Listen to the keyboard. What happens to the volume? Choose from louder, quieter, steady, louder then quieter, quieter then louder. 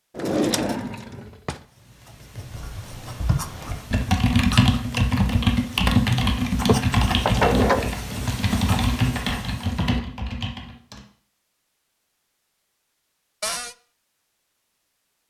louder then quieter.